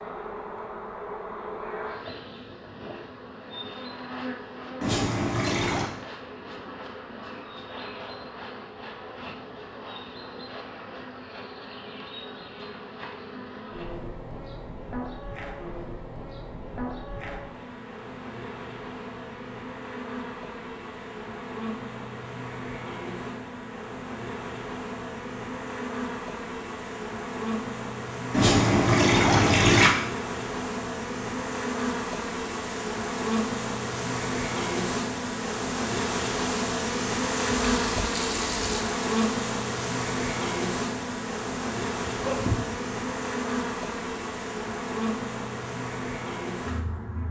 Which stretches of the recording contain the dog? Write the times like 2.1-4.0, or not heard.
42.1-42.8.